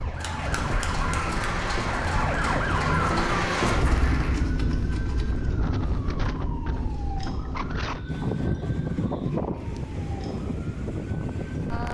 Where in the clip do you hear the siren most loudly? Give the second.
3 s.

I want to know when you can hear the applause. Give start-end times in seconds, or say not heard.
0.0-4.5.